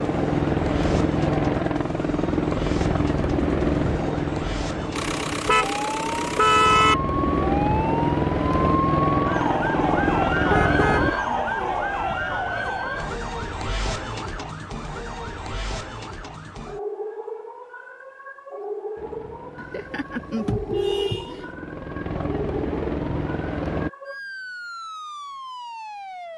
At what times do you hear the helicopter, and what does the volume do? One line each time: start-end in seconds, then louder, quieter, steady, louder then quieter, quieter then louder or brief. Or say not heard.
0.0-11.2 quieter then louder
18.9-23.9 louder.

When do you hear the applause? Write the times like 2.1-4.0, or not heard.
not heard.